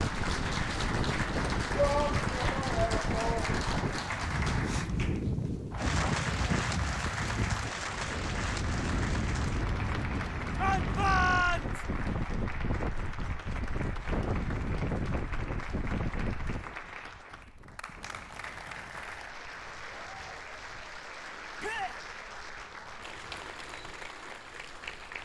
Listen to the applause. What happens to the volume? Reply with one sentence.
The loudness of the applause goes down.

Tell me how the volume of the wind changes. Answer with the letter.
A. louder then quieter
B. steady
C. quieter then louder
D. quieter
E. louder
D.